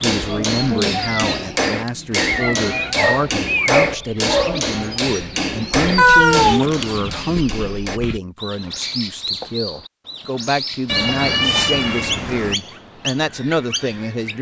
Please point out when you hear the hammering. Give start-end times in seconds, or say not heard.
0.0-8.0.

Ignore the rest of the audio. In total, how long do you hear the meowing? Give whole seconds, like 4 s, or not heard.
5 s.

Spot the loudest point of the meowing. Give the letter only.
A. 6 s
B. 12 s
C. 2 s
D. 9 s
A.